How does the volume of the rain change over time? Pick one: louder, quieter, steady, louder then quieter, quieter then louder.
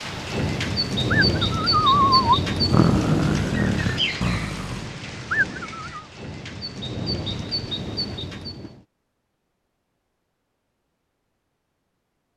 quieter then louder.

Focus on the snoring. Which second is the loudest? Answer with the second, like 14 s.
2 s.